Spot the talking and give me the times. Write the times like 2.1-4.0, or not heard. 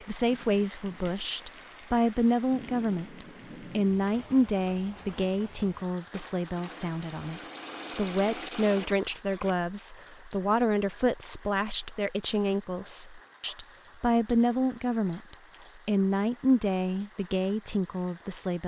0.1-18.6.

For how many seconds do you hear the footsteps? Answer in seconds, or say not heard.
not heard.